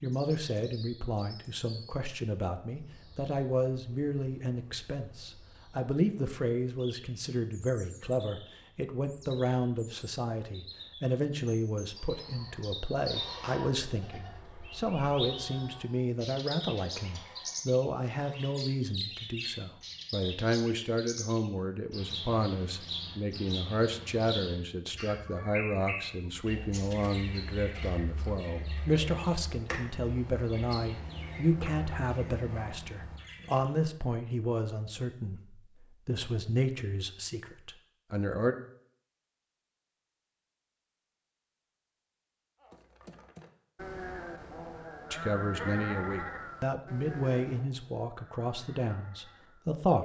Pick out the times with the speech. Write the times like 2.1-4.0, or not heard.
0.0-38.5, 45.1-50.0.